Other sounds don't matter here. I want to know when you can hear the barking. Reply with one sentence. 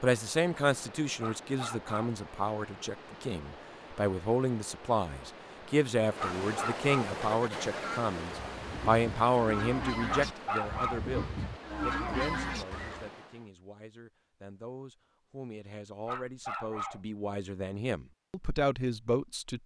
You can hear the barking from 1.2 to 2.1 s, from 6.2 to 7.1 s, from 10.1 to 11.1 s and from 16.1 to 17.0 s.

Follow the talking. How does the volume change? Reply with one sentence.
The volume of the talking goes down, then up.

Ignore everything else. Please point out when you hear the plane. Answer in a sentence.
The plane can't be heard in this clip.